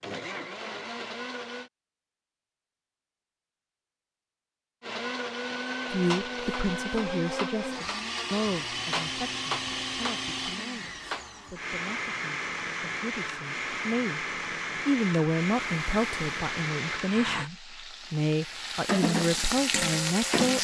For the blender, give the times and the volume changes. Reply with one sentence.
You can hear the blender briefly from 0.0 to 1.7 s; and from 4.8 to 17.5 s, at a steady volume.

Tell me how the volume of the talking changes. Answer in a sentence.
The loudness of the talking goes down, then up.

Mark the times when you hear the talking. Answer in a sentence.
The talking can be heard from 5.9 to 14.2 s and from 14.8 to 20.6 s.